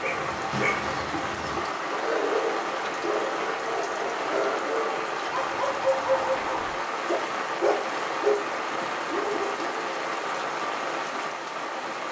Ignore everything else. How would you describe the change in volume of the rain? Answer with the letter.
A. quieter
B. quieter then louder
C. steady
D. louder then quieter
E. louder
C.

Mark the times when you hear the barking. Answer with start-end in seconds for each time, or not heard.
0.0-9.8.